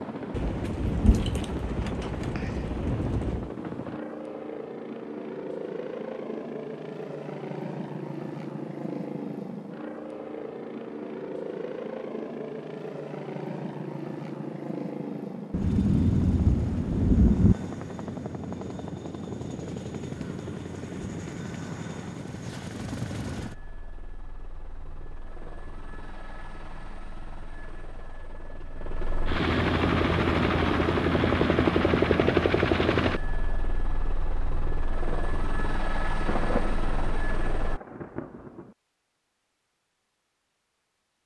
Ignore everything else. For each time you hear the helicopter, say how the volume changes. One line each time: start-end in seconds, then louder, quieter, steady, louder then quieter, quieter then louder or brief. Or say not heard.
0.0-37.8 louder.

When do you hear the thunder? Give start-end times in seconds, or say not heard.
0.3-3.5, 15.5-17.6, 36.2-38.7.